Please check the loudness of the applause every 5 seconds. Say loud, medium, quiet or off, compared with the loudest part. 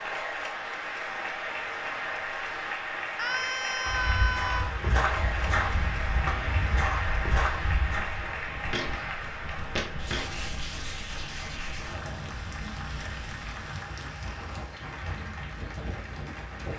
loud, loud, medium, medium.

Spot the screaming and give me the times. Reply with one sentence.
You can hear the screaming from 3.1 to 4.8 s.